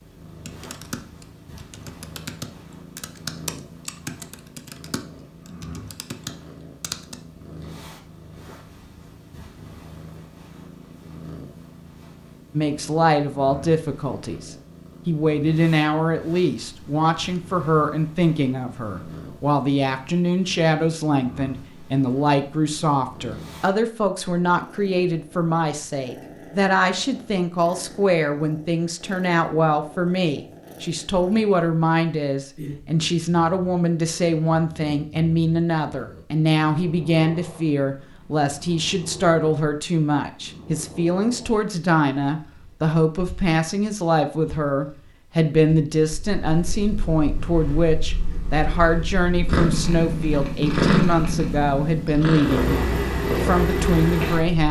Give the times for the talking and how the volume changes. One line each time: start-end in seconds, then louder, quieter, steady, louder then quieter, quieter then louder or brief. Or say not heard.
12.6-54.6 steady.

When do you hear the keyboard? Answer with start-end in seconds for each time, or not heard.
0.5-7.2.